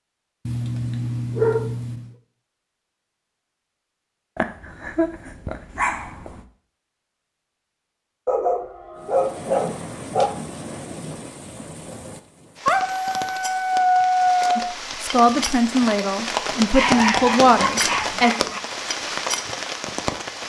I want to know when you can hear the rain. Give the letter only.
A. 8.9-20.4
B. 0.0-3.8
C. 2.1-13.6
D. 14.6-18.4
A.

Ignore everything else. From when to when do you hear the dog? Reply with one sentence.
The dog can be heard from 0.5 to 2.1 s, from 4.3 to 6.4 s, from 8.2 to 10.3 s, from 12.7 to 14.8 s and from 16.7 to 18.6 s.